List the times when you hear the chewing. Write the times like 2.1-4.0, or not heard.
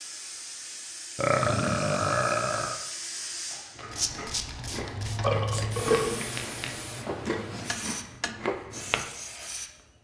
3.8-9.1.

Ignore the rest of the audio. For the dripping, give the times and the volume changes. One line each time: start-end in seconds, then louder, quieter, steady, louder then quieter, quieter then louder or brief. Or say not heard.
not heard.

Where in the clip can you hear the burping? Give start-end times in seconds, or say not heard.
1.1-2.8, 5.2-6.3.